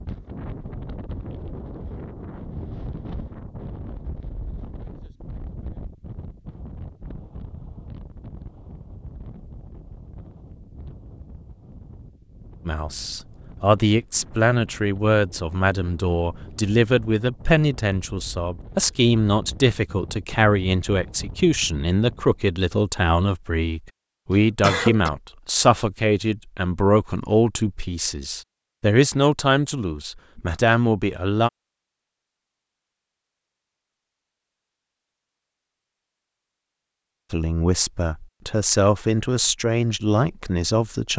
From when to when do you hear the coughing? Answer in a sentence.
The coughing can be heard from 24.3 to 25.1 s.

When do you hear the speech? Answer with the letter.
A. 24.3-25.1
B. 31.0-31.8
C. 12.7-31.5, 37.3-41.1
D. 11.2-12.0
C.